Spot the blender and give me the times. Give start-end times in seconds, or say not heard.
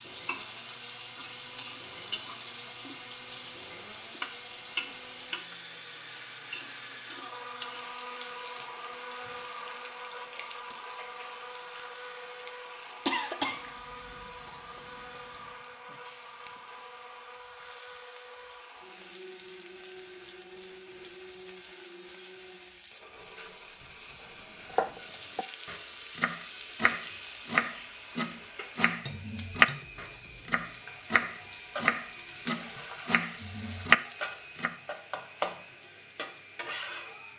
0.0-37.3.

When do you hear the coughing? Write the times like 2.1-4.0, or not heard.
13.1-13.6.